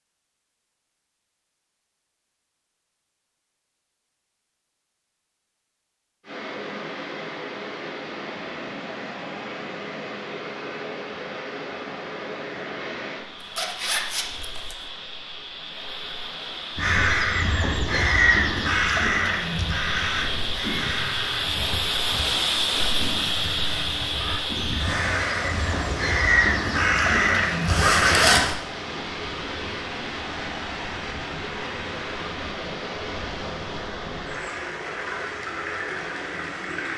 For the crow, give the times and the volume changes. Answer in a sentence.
You can hear the crow from 16.8 to 28.4 s, getting quieter then louder.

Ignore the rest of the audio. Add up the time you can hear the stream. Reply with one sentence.
You can hear the stream for 31 seconds altogether.